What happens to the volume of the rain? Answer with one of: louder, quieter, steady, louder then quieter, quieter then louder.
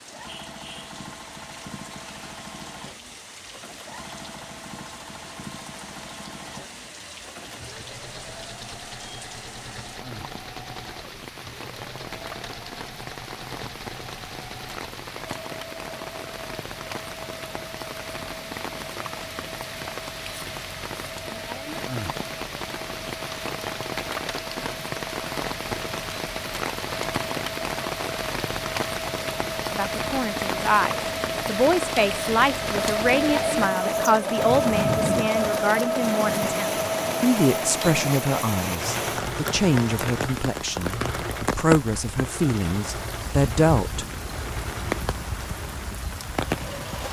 louder.